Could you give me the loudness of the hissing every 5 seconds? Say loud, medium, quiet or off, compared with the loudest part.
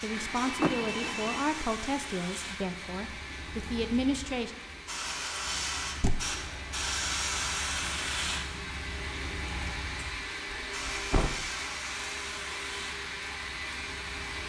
medium, loud, medium.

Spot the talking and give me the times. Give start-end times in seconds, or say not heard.
0.0-4.5.